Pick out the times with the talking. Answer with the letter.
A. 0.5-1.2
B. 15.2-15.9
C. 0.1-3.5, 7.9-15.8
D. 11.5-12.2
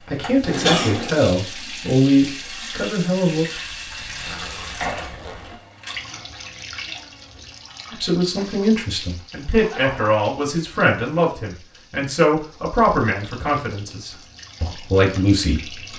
C.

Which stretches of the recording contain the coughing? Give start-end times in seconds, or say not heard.
0.5-1.2.